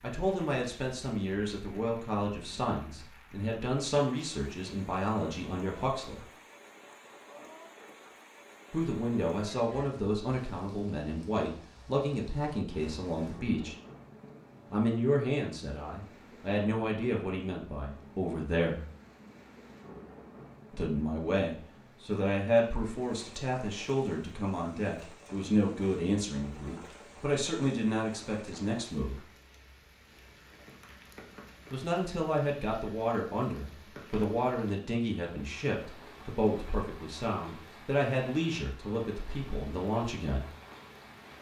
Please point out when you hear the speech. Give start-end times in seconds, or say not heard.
0.0-6.2, 8.7-13.8, 14.7-18.9, 20.7-29.2, 31.7-40.5.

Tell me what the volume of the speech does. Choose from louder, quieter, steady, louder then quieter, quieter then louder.
steady.